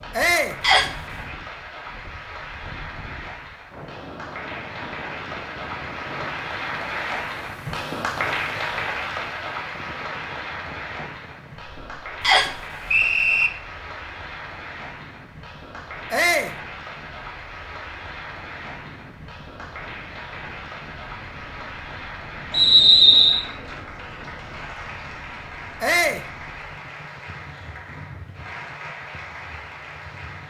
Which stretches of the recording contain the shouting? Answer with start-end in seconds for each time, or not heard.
0.1-0.6, 16.1-16.6, 25.8-26.2.